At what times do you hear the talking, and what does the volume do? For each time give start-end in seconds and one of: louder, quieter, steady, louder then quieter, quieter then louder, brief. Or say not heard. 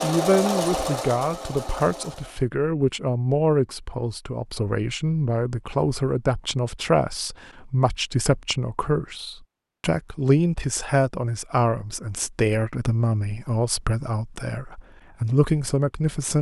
0.0-16.3 steady.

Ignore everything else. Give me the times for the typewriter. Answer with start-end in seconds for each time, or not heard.
not heard.